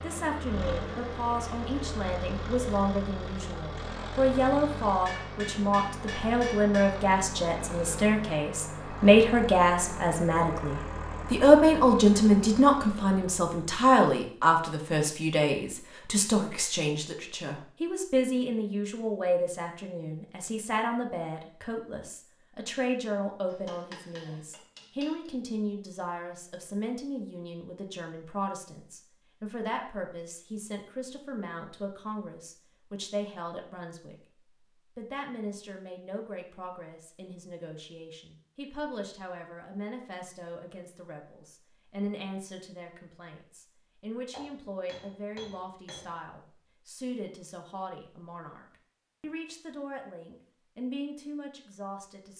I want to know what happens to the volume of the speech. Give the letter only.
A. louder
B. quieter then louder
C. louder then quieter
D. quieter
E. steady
D.